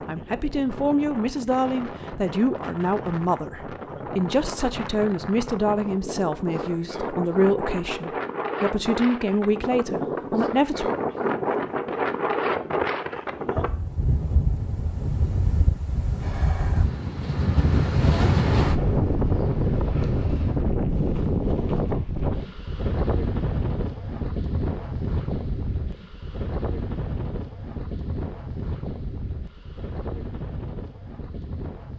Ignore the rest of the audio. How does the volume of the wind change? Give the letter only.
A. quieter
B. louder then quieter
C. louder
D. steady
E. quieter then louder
B.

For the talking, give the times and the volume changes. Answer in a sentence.
You can hear the talking from 0.1 to 10.9 s, at a steady volume.